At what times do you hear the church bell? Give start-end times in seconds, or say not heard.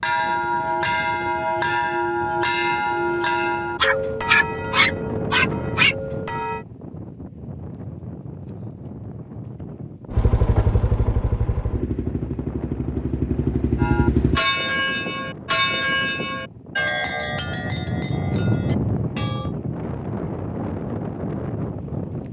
0.0-6.7, 13.8-19.6.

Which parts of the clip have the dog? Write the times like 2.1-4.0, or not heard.
3.8-6.0.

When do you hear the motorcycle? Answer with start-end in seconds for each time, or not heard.
10.1-14.4.